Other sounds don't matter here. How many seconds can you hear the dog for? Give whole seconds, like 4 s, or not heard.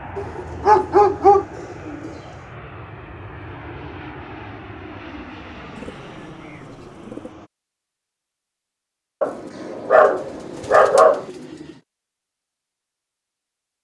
3 s.